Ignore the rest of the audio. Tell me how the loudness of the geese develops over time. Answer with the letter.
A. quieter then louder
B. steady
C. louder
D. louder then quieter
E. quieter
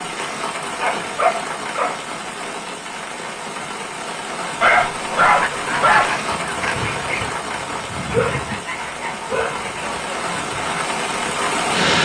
E.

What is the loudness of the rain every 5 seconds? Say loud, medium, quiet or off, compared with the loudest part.
medium, medium, loud.